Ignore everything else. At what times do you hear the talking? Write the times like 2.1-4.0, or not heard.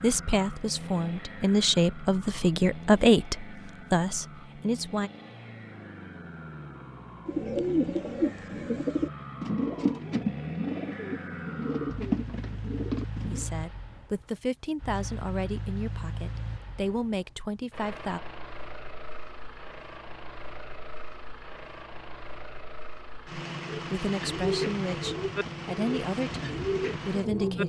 0.0-5.1, 13.2-18.2, 23.9-27.6.